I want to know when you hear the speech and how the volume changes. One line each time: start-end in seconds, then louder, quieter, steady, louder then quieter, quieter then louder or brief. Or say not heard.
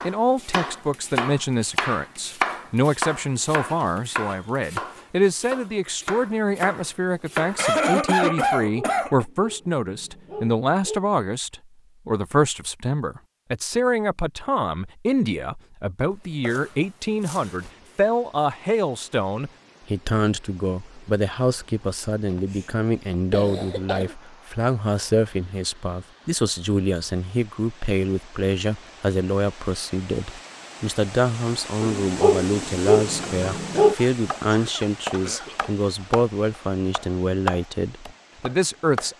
0.0-39.1 steady.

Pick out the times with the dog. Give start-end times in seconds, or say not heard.
8.6-11.1, 31.8-34.0.